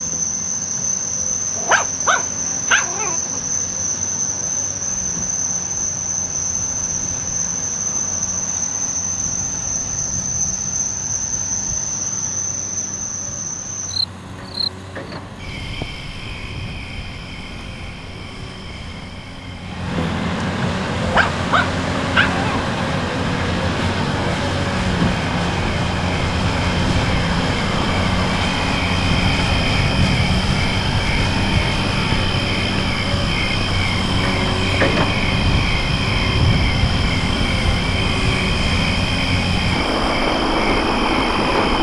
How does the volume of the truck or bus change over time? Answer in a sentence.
The volume of the truck or bus goes up.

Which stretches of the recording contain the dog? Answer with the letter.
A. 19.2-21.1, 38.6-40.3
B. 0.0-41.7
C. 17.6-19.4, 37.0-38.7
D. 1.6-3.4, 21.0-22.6
D.